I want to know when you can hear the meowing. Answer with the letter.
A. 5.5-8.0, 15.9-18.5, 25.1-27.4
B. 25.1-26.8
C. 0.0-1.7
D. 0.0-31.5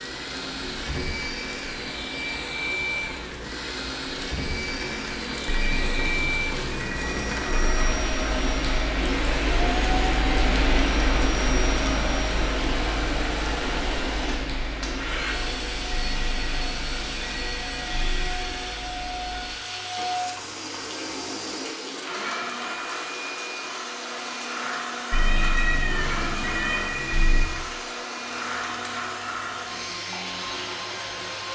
B.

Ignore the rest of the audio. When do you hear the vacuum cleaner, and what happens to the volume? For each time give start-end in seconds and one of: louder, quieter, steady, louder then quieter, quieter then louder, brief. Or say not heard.
0.0-31.5 steady.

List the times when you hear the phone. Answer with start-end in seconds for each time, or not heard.
5.5-8.0, 15.9-18.5, 25.1-27.4.